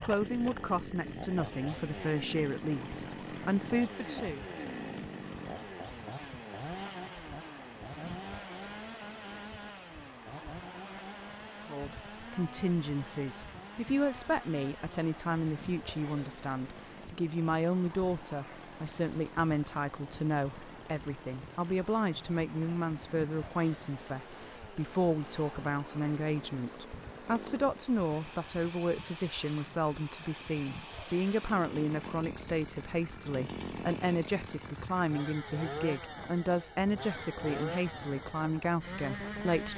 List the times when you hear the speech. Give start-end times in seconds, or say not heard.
0.0-4.5, 11.7-39.7.